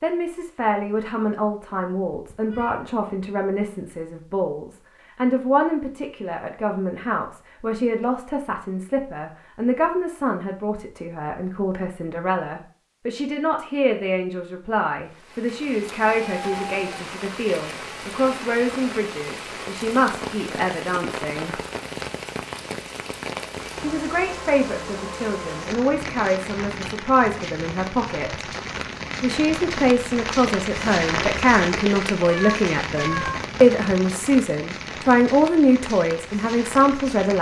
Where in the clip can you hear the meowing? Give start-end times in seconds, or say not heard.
1.6-2.9, 16.1-16.9, 32.2-33.4.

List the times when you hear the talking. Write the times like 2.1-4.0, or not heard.
0.0-21.6, 23.8-28.4, 29.2-37.3.